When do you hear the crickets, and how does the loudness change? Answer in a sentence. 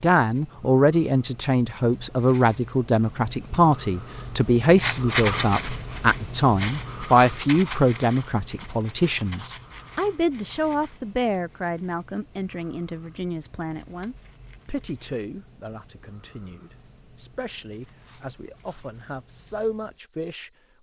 The crickets can be heard from 0.0 to 20.7 s, getting louder then quieter.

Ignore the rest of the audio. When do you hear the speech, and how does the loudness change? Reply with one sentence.
The speech can be heard from 0.0 to 20.5 s, getting quieter.